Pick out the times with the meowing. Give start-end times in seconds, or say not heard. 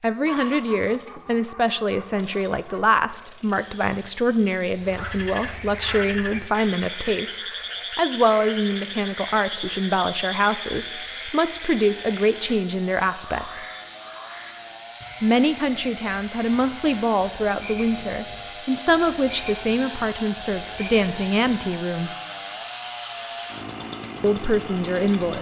not heard.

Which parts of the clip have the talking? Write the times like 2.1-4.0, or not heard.
0.0-13.7, 15.2-22.1, 24.2-25.3.